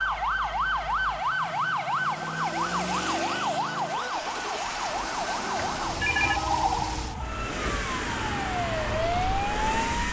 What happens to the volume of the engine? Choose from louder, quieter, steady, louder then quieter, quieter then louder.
louder.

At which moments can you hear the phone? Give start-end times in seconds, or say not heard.
5.5-6.4.